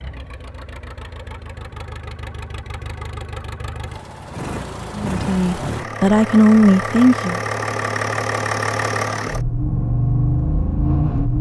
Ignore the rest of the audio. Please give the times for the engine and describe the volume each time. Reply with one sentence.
The engine can be heard from 0.0 to 11.3 s, getting louder.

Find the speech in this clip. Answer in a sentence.
You can hear the speech from 4.9 to 7.4 s.